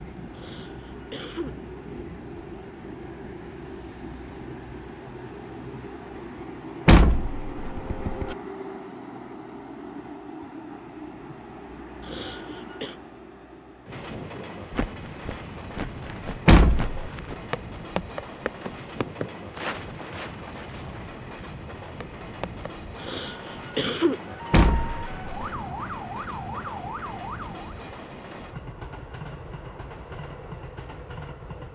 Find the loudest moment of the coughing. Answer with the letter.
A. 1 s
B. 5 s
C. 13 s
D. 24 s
D.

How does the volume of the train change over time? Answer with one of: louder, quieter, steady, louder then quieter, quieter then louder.
steady.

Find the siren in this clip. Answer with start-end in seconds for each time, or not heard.
24.2-27.9.